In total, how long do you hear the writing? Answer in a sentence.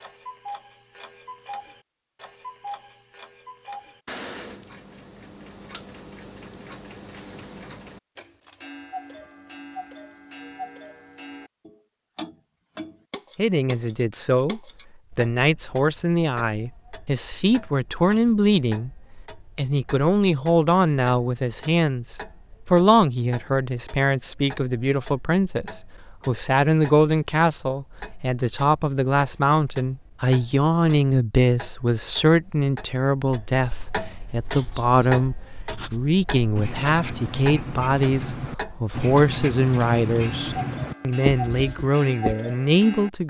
You can hear the writing for 8 seconds altogether.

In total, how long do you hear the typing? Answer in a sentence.
You can't hear the typing here.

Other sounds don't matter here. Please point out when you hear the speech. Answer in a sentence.
You can hear the speech from 13.3 to 18.9 s and from 19.6 to 43.2 s.